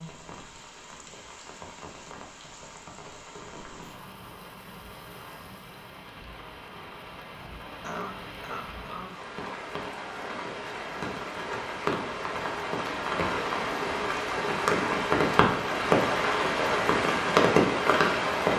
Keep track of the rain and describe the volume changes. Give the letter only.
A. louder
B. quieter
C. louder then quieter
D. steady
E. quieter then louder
A.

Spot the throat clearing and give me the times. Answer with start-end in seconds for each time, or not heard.
7.8-9.3.